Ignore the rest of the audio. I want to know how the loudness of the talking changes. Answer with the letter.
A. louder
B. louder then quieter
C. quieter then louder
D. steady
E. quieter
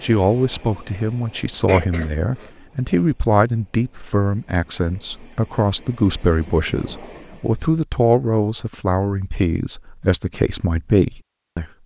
D.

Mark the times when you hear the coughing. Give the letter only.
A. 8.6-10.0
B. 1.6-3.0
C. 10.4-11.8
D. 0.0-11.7
B.